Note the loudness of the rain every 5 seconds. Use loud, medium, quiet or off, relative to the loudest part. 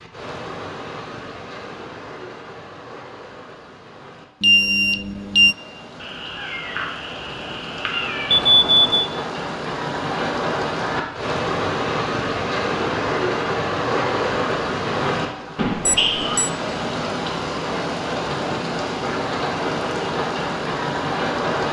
quiet, medium, loud, loud, loud.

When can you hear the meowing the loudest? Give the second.
16 s.